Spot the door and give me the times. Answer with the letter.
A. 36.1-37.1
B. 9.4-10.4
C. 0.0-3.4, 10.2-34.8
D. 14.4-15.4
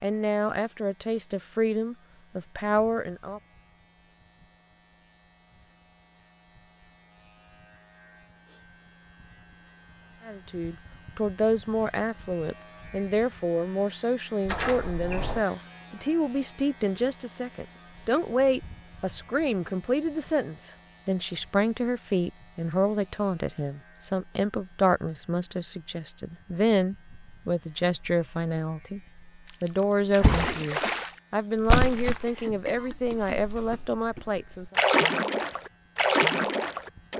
D.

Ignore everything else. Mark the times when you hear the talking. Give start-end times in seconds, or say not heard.
0.0-3.4, 10.2-34.8.